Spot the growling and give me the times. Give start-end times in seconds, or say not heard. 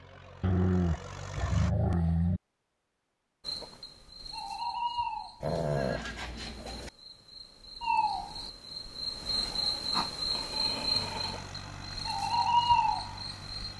0.4-2.4, 5.4-6.9, 9.9-11.4.